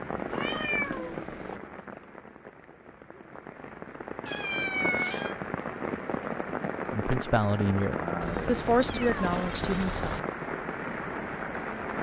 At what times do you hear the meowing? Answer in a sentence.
You can hear the meowing from 0.2 to 1.6 s, from 4.2 to 5.3 s and from 8.2 to 10.2 s.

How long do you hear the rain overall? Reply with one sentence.
You can hear the rain for 12 seconds altogether.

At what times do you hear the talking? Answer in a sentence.
You can hear the talking from 6.8 to 10.2 s.